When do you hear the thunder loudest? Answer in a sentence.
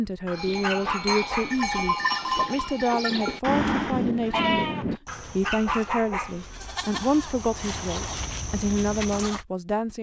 The loudest moment of the thunder is at 4 seconds.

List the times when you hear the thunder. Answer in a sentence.
The thunder can be heard from 3.5 to 5.0 s.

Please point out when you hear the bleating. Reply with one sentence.
The bleating can be heard from 0.3 to 9.4 s.